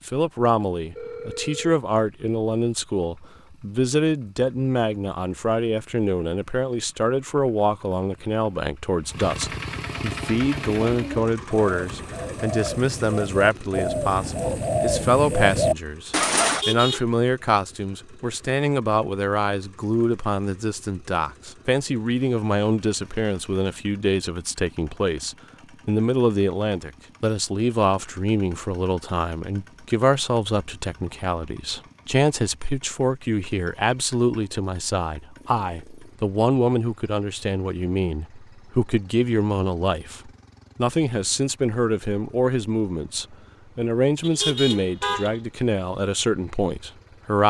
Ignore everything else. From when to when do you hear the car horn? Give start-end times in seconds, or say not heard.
16.4-17.1, 44.2-45.4.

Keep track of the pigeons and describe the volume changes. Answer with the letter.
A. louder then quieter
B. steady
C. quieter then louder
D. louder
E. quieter
D.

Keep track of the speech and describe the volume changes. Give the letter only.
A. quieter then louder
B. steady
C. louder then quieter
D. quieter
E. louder
B.